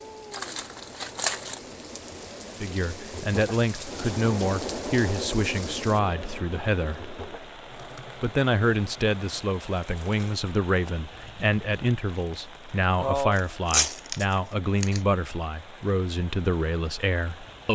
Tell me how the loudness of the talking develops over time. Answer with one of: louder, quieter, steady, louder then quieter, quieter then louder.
steady.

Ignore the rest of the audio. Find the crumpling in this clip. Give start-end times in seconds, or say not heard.
0.3-1.6, 13.3-15.0.